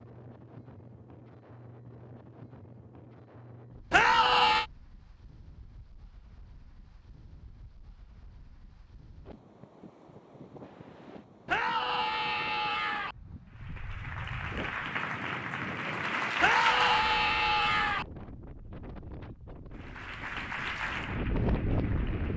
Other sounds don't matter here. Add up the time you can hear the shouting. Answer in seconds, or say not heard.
4 s.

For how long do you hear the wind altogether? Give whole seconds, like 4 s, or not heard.
22 s.